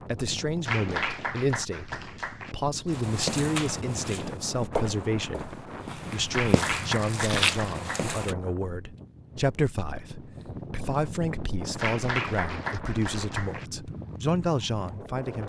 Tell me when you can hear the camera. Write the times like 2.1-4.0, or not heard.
not heard.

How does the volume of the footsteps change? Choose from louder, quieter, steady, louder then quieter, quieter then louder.
quieter then louder.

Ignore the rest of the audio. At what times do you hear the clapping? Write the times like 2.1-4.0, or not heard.
0.7-2.5, 6.3-8.2, 11.8-13.7.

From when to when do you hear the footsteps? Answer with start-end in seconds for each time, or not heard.
2.9-8.3.